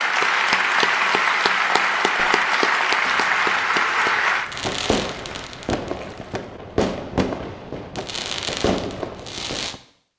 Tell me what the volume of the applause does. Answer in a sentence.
The loudness of the applause goes down.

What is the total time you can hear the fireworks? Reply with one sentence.
You can hear the fireworks for 8 seconds altogether.